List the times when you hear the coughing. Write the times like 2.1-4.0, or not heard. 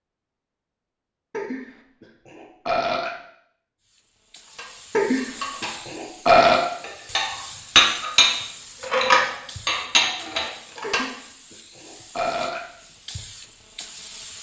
not heard.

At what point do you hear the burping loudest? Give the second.
6 s.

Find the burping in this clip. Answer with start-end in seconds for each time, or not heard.
1.3-3.1, 5.0-6.7, 10.8-12.7.